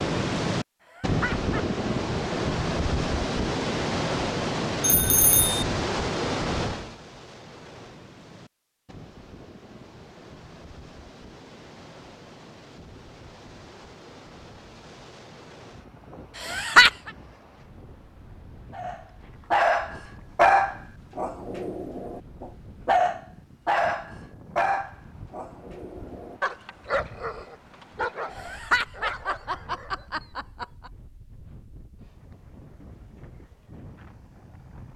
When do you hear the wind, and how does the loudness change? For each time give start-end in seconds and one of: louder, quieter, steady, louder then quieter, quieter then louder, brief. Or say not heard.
0.0-34.9 quieter.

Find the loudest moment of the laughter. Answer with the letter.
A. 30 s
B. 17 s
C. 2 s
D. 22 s
B.